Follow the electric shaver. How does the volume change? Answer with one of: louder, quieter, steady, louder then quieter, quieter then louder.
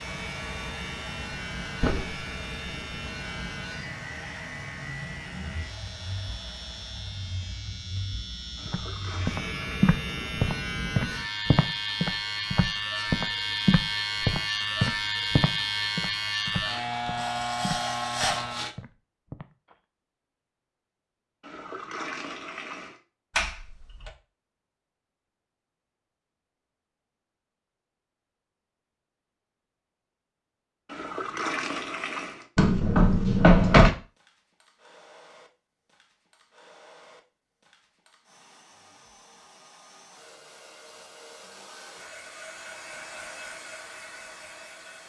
louder.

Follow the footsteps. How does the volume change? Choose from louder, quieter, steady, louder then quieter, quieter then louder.
quieter.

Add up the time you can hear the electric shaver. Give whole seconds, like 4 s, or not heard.
19 s.